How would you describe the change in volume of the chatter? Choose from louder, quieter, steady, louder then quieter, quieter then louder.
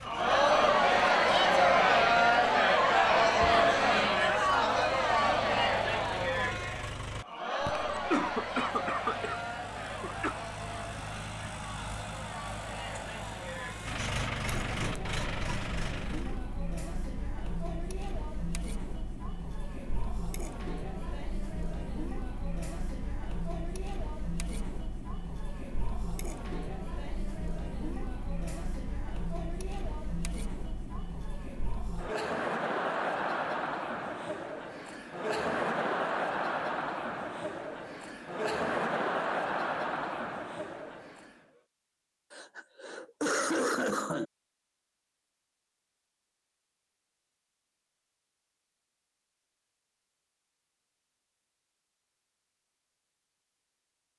quieter then louder.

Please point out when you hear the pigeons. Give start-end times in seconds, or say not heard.
not heard.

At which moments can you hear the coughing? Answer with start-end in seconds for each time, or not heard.
7.7-10.3, 42.3-44.2.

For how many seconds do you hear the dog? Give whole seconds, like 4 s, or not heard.
not heard.